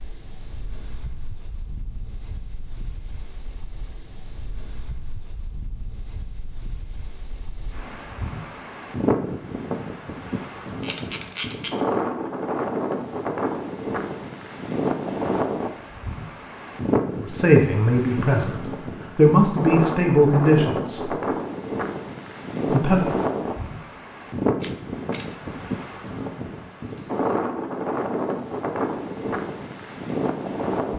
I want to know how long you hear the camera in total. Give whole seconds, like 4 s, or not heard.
2 s.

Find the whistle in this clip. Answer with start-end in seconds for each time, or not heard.
not heard.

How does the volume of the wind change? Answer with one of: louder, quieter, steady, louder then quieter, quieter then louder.
louder.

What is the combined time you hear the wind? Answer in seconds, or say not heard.
31 s.